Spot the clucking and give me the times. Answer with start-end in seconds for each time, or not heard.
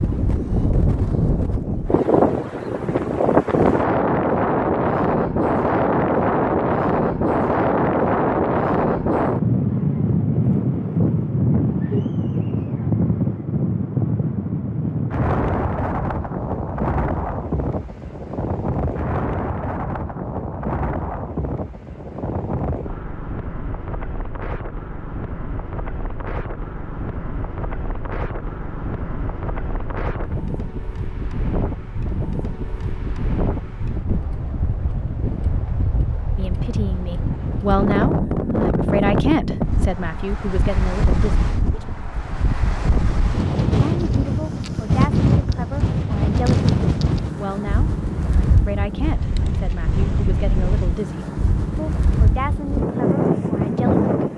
not heard.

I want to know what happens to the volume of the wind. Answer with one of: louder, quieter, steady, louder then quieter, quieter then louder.
quieter then louder.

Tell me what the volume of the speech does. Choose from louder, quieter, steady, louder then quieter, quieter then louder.
quieter.